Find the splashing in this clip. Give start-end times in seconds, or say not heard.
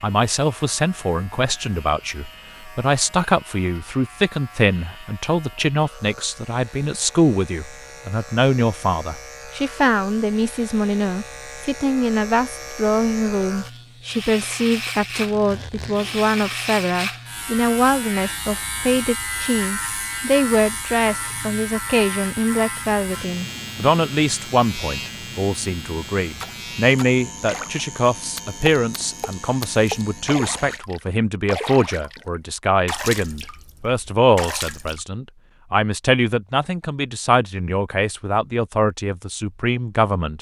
26.4-35.0.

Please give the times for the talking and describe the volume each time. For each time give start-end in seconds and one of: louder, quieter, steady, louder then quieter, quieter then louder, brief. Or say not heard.
0.0-40.3 steady.